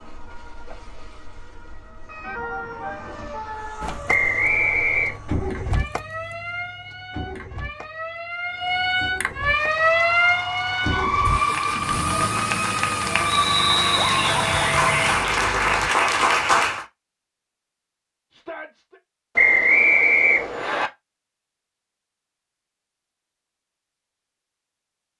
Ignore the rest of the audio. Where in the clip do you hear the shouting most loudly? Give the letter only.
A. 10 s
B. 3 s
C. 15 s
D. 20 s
C.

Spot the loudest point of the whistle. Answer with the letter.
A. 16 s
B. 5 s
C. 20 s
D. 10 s
C.